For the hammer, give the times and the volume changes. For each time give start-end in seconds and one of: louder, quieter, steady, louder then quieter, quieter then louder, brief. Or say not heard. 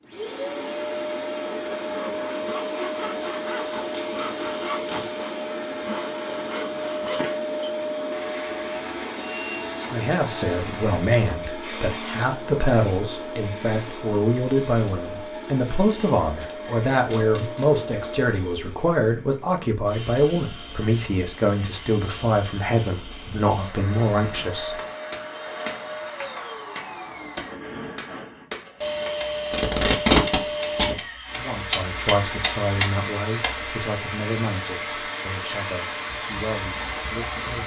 24.1-33.7 louder.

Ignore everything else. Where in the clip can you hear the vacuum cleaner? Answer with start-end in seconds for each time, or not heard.
0.0-37.6.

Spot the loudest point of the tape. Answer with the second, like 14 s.
30 s.